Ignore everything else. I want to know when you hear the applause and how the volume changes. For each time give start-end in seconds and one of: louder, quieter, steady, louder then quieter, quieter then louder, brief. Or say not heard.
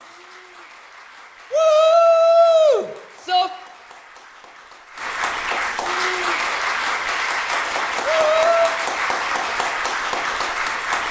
0.0-11.0 louder.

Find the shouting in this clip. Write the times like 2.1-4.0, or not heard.
1.5-3.5, 8.0-8.8.